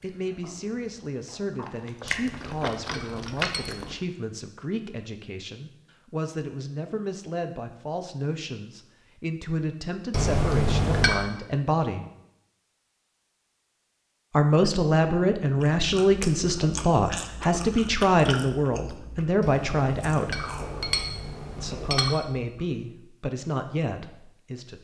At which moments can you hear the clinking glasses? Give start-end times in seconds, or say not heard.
2.0-4.0, 10.1-11.2, 19.4-22.1.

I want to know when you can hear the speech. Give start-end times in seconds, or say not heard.
0.0-12.1, 14.3-20.4, 21.6-24.7.